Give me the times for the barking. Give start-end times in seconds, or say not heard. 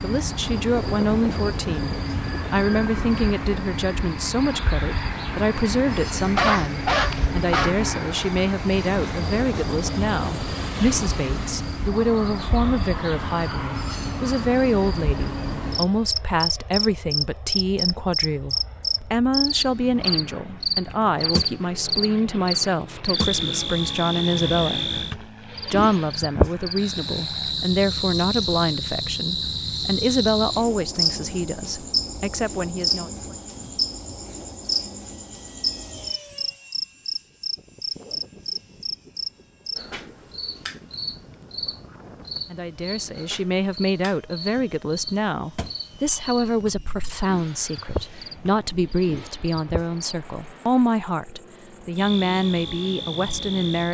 6.2-7.8.